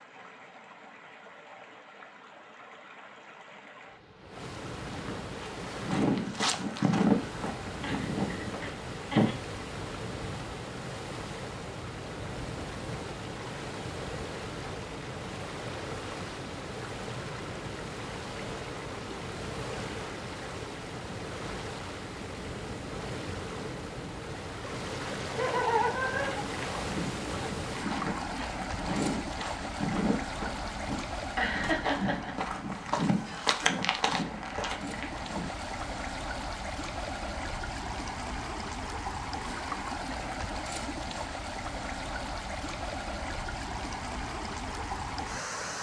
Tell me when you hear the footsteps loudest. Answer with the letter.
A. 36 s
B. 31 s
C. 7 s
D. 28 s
C.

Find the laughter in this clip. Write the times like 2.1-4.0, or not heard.
7.8-9.3, 25.3-26.4, 31.4-32.4.